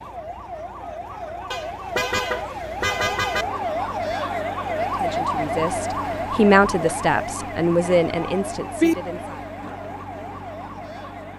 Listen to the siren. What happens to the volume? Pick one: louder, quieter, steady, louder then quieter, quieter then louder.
louder then quieter.